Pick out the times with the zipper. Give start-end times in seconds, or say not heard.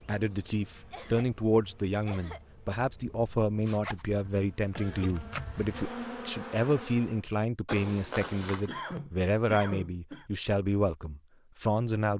3.6-4.2, 7.7-8.7.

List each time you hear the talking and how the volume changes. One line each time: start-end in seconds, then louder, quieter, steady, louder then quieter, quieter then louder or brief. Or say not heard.
0.1-12.1 steady.